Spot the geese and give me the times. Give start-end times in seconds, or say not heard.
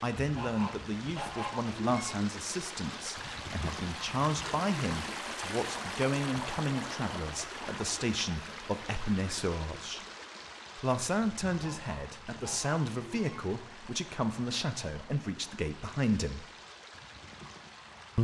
0.1-2.1, 11.5-13.4.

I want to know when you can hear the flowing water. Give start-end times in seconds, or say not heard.
0.0-18.1.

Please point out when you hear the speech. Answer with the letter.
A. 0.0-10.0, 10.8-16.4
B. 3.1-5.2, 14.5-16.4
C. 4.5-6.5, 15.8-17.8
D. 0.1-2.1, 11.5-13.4
A.